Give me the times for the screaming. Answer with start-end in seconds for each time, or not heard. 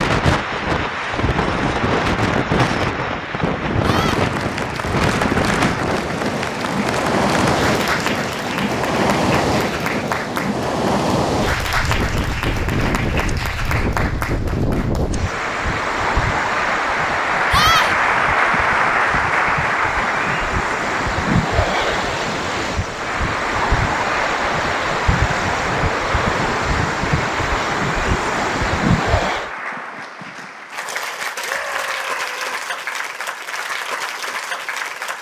3.8-4.2, 17.5-17.9, 31.4-32.6.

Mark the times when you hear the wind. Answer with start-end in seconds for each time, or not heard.
0.0-29.5.